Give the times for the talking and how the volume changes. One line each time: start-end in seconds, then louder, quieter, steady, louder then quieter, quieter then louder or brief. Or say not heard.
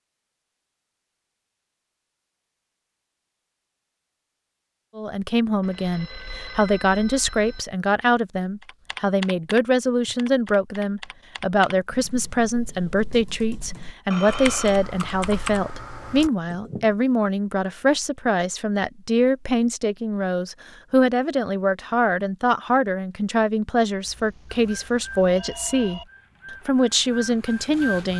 5.0-26.0 steady
26.6-28.1 brief.